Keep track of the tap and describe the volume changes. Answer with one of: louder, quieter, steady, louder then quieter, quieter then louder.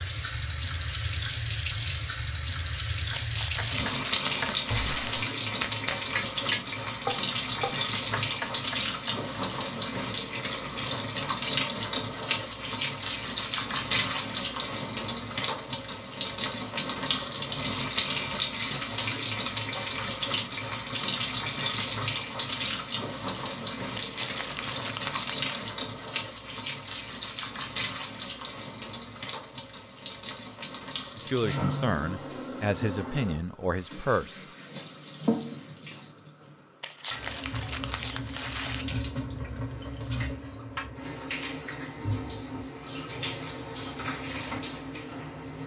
quieter.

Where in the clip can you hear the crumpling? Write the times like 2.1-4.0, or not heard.
3.1-5.2, 23.9-25.7, 36.8-38.9.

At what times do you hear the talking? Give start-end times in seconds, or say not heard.
31.1-34.5.